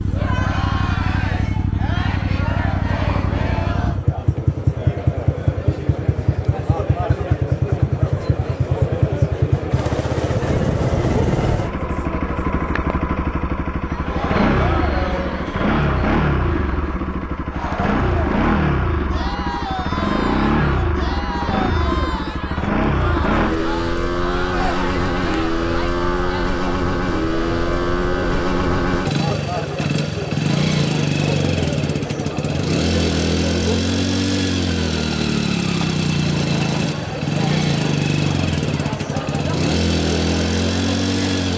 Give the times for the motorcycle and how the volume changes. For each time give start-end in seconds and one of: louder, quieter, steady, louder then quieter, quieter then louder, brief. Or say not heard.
0.0-41.5 steady.